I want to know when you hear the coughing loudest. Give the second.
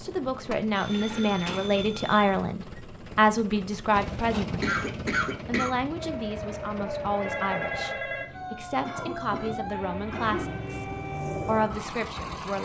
5 s.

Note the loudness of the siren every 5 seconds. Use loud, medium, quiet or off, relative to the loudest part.
off, loud, loud.